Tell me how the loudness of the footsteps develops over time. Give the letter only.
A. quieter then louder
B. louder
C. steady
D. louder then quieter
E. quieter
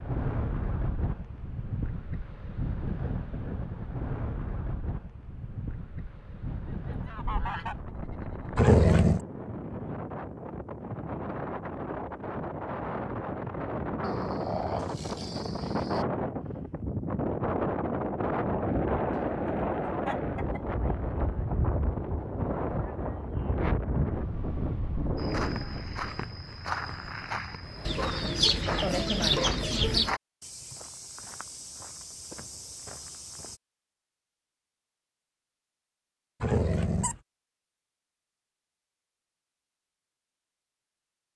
E.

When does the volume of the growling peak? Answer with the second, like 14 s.
9 s.